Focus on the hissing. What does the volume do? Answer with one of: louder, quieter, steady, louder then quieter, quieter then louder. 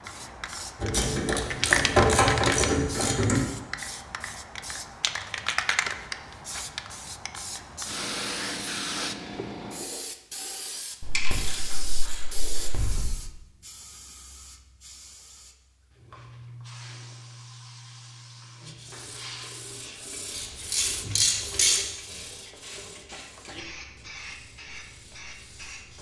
quieter.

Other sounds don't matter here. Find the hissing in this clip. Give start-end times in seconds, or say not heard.
0.0-25.9.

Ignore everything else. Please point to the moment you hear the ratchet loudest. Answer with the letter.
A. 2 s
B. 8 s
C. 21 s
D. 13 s
A.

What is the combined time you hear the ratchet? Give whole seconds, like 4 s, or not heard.
6 s.